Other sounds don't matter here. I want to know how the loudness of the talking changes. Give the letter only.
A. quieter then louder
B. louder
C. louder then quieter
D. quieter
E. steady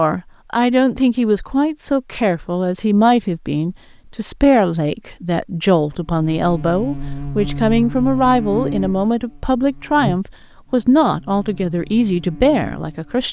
E.